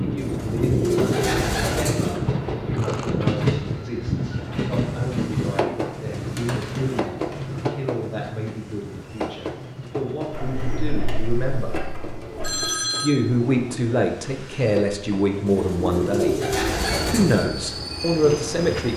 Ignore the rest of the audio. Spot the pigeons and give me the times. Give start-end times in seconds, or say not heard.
0.1-2.2, 5.5-7.4, 10.3-12.7, 15.4-17.4.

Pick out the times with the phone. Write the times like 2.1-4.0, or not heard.
12.4-13.1.